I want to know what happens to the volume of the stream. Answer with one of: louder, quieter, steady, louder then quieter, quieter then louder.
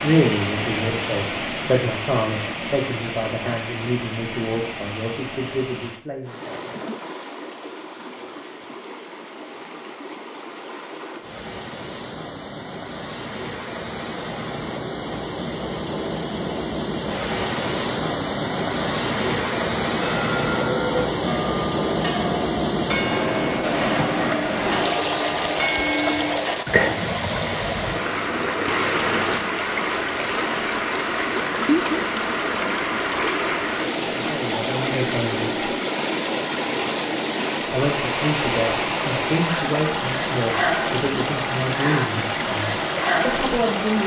louder.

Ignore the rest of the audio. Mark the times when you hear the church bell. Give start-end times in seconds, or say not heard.
19.9-26.6.